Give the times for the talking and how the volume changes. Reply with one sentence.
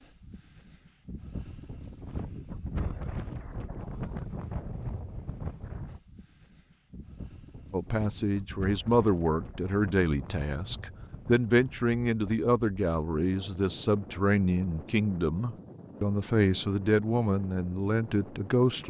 The talking can be heard from 7.7 to 18.8 s, at a steady volume.